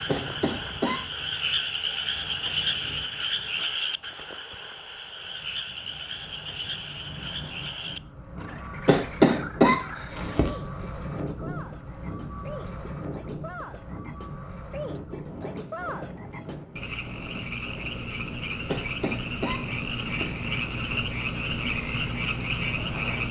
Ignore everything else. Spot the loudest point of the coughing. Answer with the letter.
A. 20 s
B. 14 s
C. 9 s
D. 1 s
C.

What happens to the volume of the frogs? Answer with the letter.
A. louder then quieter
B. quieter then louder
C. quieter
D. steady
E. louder
B.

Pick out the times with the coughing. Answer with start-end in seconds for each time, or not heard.
0.1-1.0, 8.8-10.6, 18.6-20.4.